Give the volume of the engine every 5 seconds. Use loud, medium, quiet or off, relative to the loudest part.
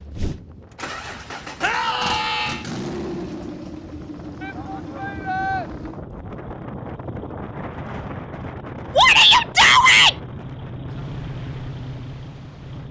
loud, medium, loud.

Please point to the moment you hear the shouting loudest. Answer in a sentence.
The volume of the shouting peaks at 9 seconds.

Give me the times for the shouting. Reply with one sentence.
The shouting can be heard from 1.6 to 2.6 s, from 4.4 to 5.7 s and from 8.9 to 10.2 s.